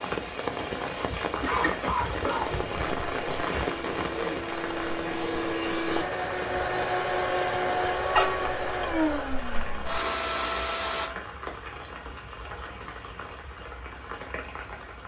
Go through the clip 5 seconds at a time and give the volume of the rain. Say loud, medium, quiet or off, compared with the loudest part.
loud, medium, medium.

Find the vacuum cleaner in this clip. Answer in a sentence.
The vacuum cleaner can be heard from 2.5 to 11.1 s.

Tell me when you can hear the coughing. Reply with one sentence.
You can hear the coughing from 1.4 to 2.5 s.